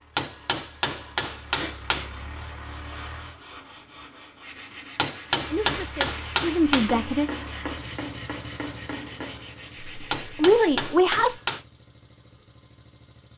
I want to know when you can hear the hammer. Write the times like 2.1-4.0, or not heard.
0.1-2.1, 5.0-7.0, 10.1-11.7.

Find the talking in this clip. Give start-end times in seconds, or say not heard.
5.5-7.2, 9.8-11.4.